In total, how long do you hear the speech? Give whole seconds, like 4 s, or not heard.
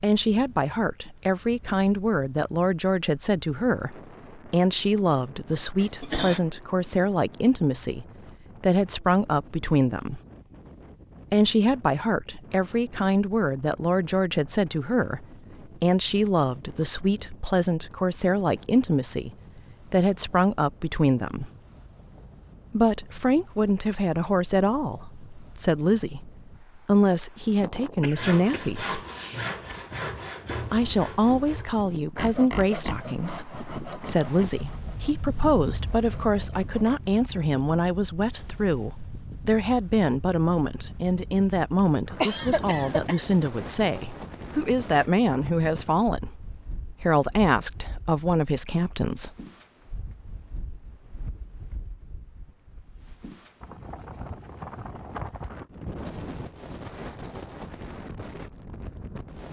45 s.